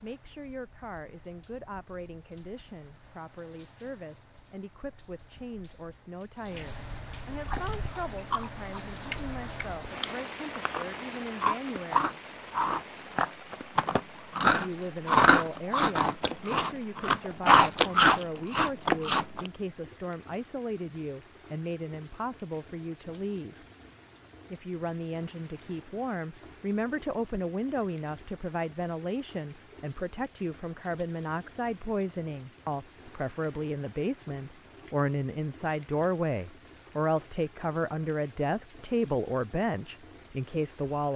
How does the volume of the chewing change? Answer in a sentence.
The volume of the chewing goes up.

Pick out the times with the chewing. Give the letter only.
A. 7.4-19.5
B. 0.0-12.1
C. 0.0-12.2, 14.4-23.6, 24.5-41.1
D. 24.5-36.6
A.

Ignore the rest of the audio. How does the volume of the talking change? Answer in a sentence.
The volume of the talking goes up.